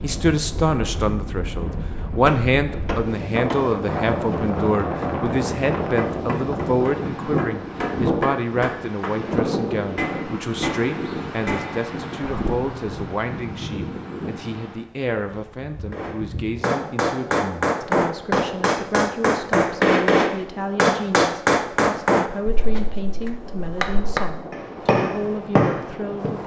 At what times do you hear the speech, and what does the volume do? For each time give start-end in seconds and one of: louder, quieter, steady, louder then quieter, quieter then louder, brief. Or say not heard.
0.0-26.4 quieter.